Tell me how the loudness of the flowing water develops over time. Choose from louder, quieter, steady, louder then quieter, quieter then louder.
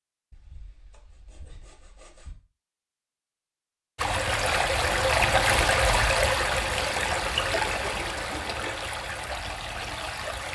quieter.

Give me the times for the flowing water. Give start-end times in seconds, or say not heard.
4.0-10.5.